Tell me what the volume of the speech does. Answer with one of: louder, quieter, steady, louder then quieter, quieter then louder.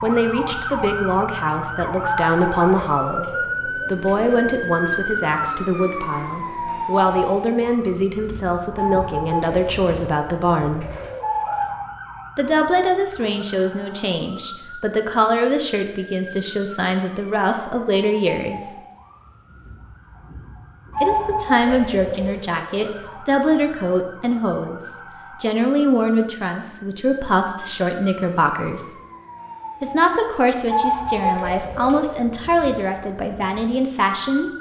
steady.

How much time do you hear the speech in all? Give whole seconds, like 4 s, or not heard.
30 s.